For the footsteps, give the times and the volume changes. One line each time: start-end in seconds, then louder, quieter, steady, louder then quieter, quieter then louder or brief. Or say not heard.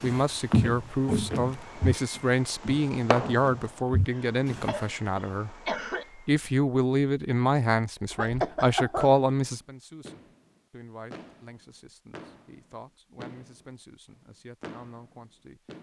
0.0-4.7 quieter then louder.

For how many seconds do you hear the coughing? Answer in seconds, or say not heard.
3 s.